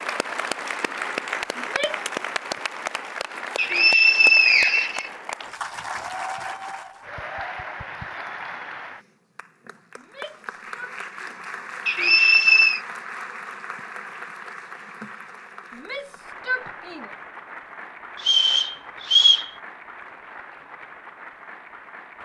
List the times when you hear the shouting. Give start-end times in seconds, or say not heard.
1.6-2.0, 9.9-11.5, 15.7-17.1.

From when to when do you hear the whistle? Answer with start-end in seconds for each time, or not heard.
3.5-5.1, 11.8-12.8, 18.1-19.5.